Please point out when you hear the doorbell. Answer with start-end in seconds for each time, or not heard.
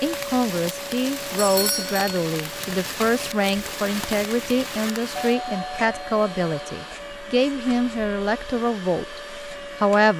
1.4-2.2, 5.2-7.0.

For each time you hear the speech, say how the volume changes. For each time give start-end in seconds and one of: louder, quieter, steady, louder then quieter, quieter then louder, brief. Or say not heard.
0.0-10.1 steady.